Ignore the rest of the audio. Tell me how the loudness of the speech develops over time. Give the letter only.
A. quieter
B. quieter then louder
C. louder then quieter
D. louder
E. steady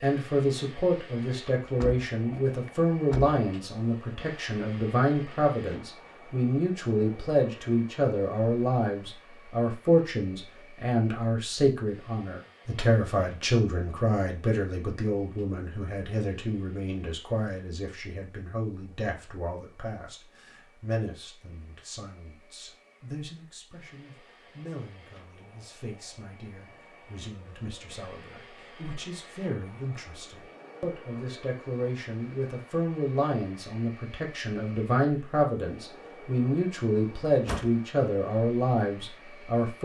B.